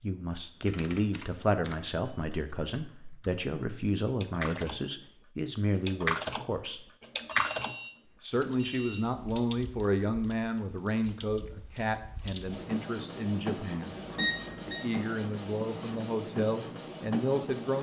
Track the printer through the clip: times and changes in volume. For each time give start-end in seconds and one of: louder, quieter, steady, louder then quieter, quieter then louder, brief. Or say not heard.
12.4-17.7 steady.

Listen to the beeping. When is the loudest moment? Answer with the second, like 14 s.
14 s.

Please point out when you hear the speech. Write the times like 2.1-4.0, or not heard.
0.0-6.8, 8.2-13.9, 14.7-17.7.